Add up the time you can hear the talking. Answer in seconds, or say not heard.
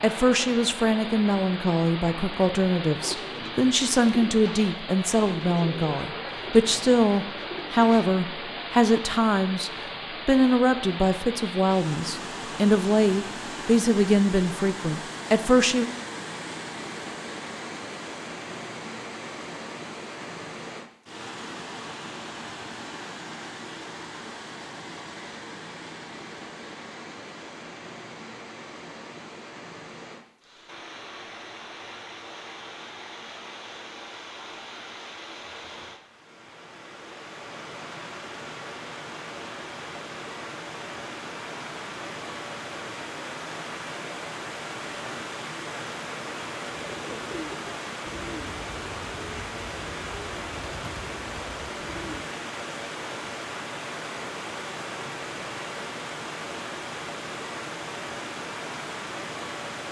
16 s.